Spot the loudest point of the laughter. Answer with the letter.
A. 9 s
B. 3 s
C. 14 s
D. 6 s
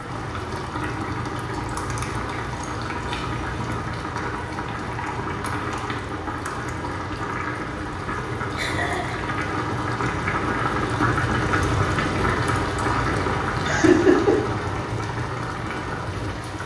C.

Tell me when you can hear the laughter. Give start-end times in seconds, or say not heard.
1.5-3.8, 8.1-9.3, 13.6-14.3.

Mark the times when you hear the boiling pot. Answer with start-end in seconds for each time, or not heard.
0.0-16.6.